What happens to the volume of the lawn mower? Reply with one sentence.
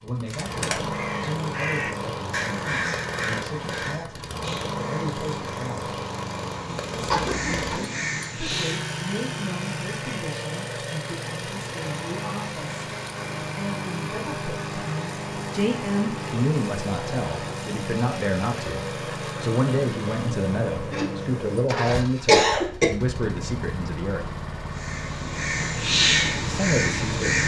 The volume of the lawn mower stays about the same.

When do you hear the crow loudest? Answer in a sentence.
The volume of the crow peaks at 26 seconds.